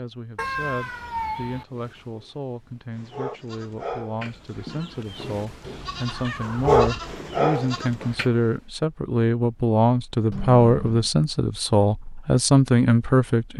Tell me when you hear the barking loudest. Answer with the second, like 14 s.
7 s.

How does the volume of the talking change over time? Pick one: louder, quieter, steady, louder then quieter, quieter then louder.
louder.